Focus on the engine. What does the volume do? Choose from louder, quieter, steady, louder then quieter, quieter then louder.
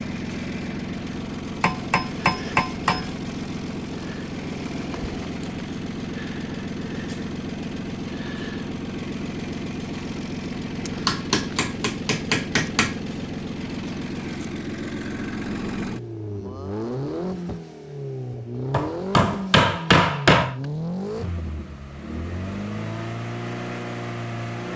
steady.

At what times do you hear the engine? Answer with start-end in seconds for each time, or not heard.
0.0-24.7.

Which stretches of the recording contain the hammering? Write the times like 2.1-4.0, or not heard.
1.6-3.0, 11.1-12.9, 18.7-20.6.